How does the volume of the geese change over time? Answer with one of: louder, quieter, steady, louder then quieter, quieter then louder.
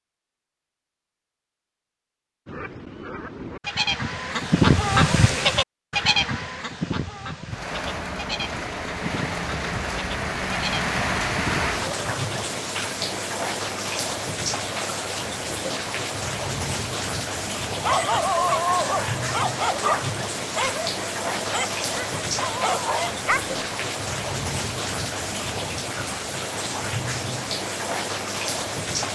louder then quieter.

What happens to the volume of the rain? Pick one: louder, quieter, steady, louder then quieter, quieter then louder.
steady.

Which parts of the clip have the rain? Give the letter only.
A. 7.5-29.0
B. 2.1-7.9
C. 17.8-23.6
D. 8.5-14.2
A.